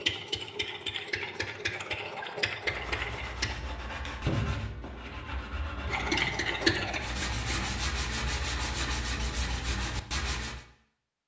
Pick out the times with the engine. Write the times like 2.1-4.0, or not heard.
0.0-3.5, 5.8-7.5.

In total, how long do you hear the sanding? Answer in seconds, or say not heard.
8 s.